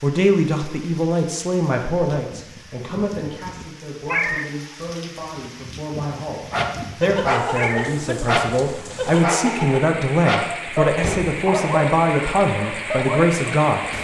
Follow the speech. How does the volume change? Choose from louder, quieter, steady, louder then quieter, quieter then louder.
quieter then louder.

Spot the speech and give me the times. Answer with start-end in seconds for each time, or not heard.
0.0-13.9.